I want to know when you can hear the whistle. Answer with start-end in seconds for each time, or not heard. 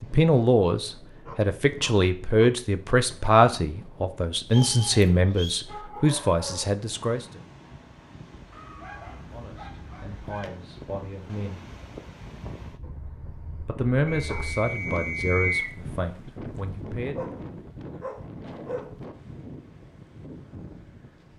4.5-5.7, 14.1-15.8.